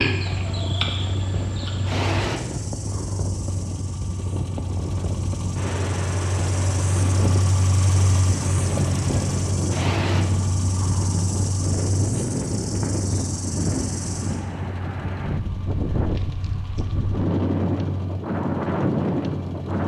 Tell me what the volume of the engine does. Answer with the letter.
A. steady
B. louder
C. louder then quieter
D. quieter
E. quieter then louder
C.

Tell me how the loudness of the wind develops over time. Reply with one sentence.
The loudness of the wind goes up.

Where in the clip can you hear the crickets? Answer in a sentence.
You can hear the crickets from 0.0 to 14.4 s.